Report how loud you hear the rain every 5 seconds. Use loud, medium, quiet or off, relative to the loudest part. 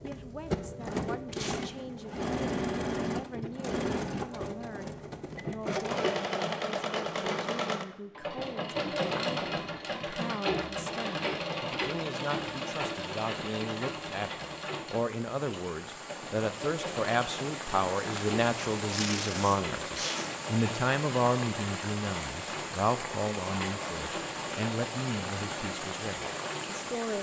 off, off, medium, loud, loud, loud.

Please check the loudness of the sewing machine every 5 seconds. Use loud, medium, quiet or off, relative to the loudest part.
loud, loud, loud, medium, medium, medium.